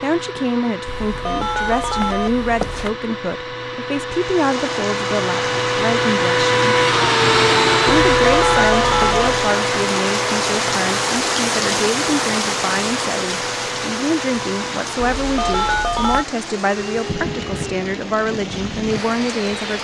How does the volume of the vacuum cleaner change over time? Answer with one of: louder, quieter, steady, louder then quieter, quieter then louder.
louder then quieter.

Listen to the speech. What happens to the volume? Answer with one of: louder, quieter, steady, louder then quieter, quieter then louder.
steady.